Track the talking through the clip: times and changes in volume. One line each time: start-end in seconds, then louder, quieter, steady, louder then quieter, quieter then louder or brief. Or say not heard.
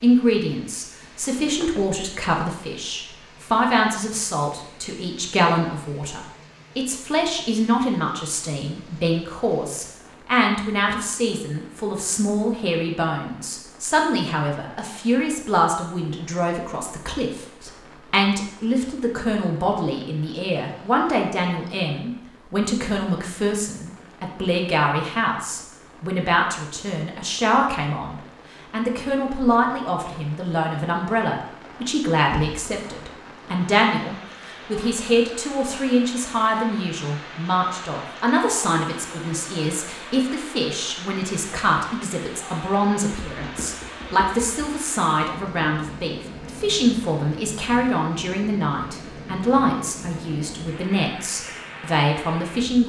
0.0-52.8 steady.